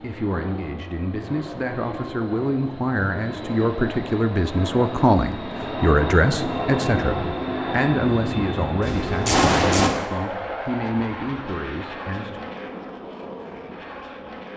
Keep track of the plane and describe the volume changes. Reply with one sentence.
The loudness of the plane goes up, then down.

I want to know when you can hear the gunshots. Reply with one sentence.
You can hear the gunshots from 8.8 to 9.9 s.